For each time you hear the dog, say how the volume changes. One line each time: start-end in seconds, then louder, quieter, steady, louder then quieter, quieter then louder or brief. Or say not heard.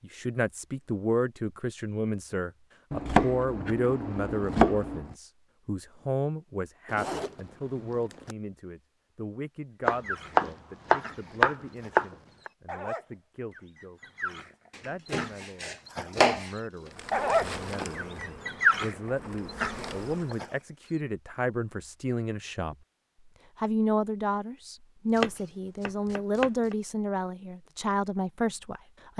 9.8-20.6 louder.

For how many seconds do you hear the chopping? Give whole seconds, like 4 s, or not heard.
8 s.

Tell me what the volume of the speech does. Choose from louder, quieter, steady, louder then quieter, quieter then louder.
quieter then louder.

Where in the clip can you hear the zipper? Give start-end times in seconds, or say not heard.
6.8-8.3.